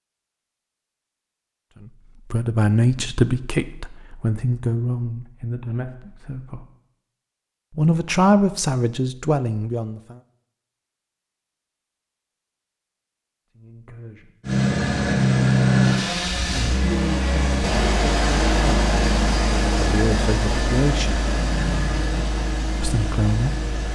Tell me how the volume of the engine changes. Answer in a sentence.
The loudness of the engine goes down.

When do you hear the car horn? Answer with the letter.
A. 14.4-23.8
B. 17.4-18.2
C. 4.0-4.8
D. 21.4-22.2
D.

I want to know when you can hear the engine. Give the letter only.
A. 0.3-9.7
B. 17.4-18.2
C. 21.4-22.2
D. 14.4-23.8
D.